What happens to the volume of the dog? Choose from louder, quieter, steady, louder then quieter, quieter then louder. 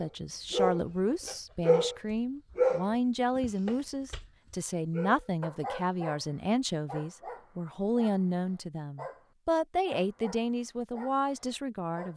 quieter.